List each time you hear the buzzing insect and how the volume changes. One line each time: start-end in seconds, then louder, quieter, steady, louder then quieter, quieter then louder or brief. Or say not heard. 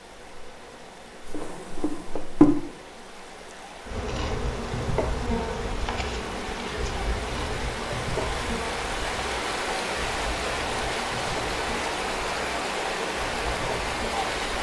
0.0-14.5 quieter.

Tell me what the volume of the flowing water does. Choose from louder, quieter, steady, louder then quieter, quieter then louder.
louder.